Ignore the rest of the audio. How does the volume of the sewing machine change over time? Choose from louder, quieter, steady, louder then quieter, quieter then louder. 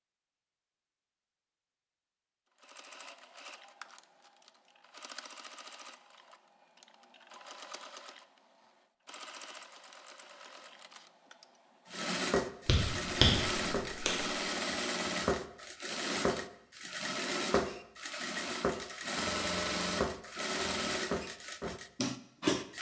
louder.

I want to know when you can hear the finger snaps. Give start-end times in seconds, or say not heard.
12.7-14.3.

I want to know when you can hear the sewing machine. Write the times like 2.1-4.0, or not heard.
2.5-22.7.